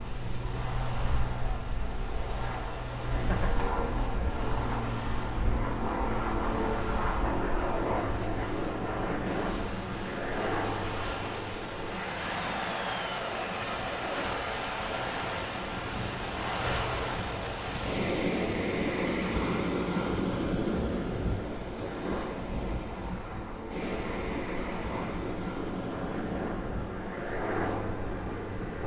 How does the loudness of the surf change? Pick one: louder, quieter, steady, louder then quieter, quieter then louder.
louder then quieter.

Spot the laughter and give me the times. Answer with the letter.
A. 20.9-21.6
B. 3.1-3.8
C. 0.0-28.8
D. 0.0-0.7
B.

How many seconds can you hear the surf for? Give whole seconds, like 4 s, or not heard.
29 s.